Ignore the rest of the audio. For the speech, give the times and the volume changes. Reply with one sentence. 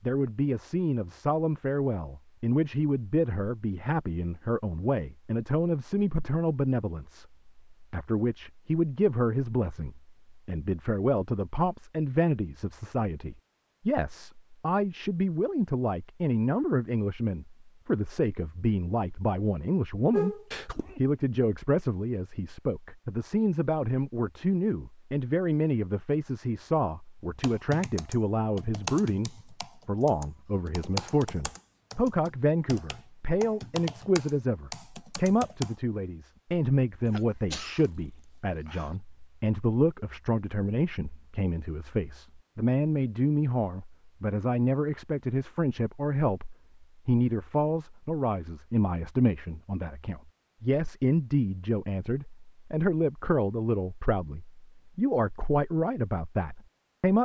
The speech can be heard from 0.0 to 57.2 s, at a steady volume.